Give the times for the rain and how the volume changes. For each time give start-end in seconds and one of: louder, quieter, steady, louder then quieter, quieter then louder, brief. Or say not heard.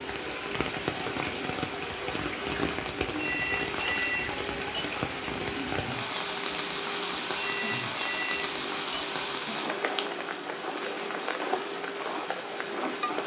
0.0-13.2 steady.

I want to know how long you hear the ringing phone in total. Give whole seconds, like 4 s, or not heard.
3 s.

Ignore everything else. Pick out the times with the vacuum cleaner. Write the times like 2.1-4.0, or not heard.
0.0-13.2.